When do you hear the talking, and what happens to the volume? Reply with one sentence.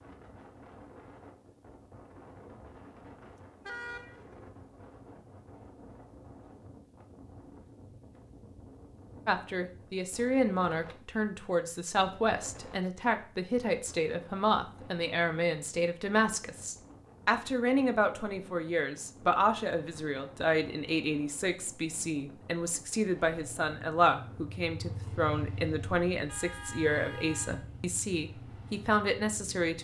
The talking can be heard from 9.2 to 29.8 s, at a steady volume.